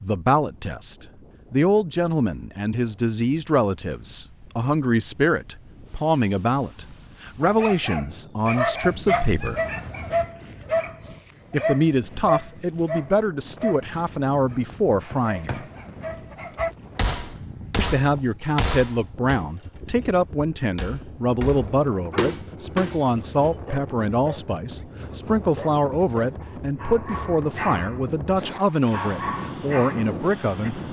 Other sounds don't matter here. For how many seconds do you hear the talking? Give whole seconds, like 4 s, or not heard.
27 s.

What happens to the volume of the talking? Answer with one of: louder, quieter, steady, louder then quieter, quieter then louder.
steady.